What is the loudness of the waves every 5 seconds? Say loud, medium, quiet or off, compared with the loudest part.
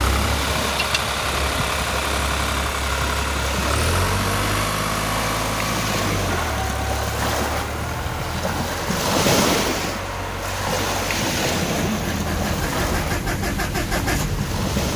medium, loud, loud.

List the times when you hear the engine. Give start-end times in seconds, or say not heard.
0.0-14.9.